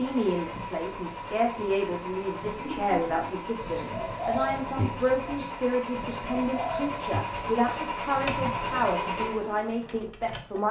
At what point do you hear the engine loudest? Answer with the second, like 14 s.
9 s.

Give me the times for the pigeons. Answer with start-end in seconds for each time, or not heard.
2.5-9.6.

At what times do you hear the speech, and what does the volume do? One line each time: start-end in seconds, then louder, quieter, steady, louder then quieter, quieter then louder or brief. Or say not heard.
0.0-10.6 steady.